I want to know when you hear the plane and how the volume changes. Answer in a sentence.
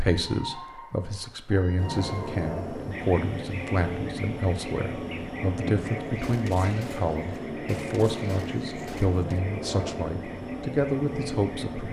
The plane can be heard from 1.8 to 11.8 s, at a steady volume.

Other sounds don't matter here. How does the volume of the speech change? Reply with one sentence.
The volume of the speech stays about the same.